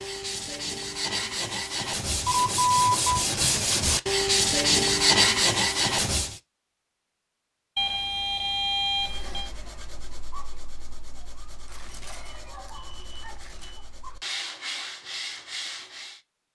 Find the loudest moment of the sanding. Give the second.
5 s.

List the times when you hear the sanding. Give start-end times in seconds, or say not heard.
0.0-6.4, 8.9-16.2.